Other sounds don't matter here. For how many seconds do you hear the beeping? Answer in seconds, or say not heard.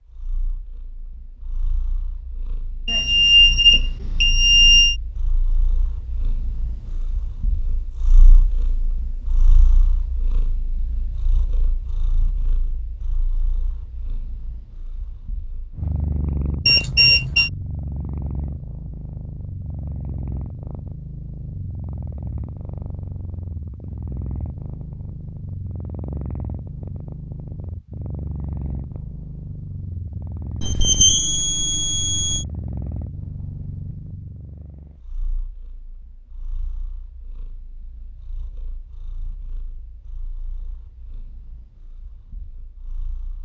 5 s.